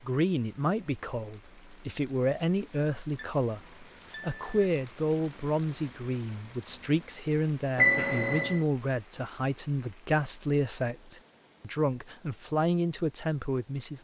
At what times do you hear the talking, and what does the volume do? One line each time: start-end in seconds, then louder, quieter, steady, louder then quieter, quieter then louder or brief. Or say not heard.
0.0-13.9 steady.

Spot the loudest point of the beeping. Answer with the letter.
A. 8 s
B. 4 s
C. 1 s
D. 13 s
A.